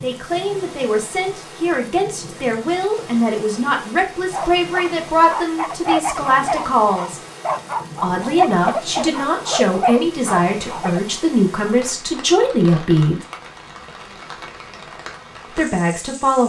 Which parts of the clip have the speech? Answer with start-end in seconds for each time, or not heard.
0.0-7.2, 8.0-13.2, 15.6-16.4.